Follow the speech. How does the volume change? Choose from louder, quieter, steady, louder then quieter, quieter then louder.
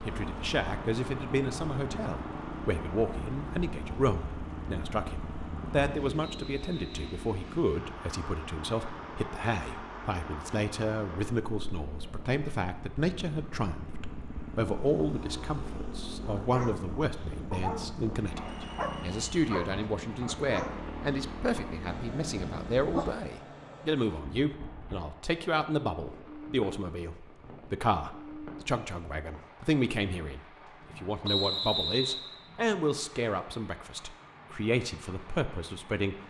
steady.